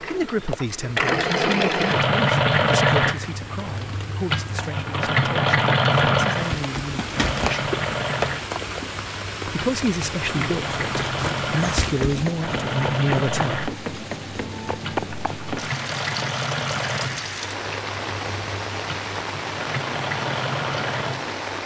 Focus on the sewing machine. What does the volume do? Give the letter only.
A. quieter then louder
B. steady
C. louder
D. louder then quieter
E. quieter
E.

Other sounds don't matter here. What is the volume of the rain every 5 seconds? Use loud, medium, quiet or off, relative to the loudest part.
medium, loud, loud, loud, loud.